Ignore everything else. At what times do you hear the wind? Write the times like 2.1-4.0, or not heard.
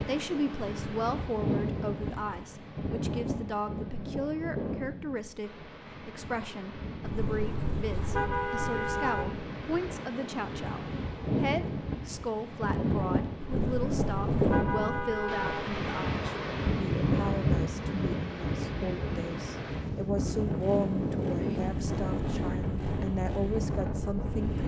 0.0-24.6.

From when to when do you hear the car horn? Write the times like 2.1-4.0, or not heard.
7.0-9.4, 13.4-15.8.